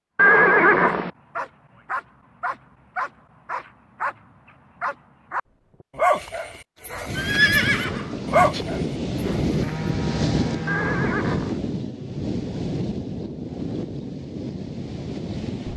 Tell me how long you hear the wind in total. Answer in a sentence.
The wind can be heard for 9 seconds in total.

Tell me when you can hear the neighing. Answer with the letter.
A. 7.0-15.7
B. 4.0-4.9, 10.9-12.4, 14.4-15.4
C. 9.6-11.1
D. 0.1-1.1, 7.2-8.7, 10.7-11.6
D.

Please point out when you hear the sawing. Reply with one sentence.
The sawing can be heard from 9.6 to 11.1 s.